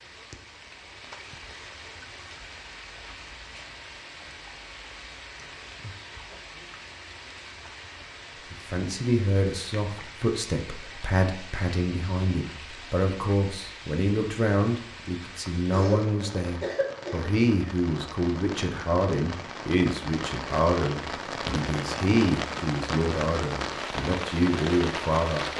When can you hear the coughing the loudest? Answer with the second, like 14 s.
16 s.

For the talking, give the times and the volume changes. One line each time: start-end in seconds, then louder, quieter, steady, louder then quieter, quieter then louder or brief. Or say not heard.
8.5-25.5 steady.